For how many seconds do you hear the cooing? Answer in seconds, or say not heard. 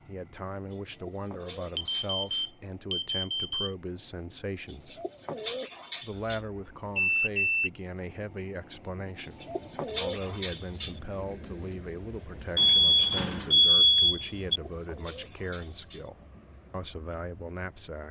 7 s.